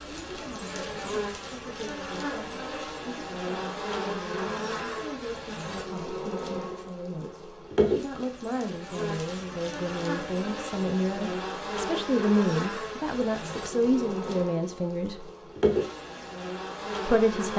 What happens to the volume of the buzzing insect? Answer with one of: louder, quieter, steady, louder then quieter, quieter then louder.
steady.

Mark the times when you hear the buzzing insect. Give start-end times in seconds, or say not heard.
0.0-17.5.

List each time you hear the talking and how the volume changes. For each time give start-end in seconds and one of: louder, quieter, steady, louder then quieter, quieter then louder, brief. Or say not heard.
0.0-15.2 louder
17.1-17.5 brief.